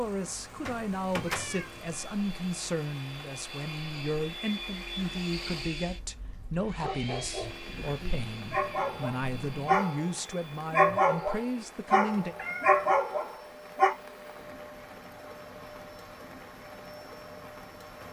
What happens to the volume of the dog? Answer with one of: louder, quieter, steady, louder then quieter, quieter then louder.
louder.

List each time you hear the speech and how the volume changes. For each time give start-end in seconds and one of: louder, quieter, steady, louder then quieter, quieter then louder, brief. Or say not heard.
0.0-12.3 steady.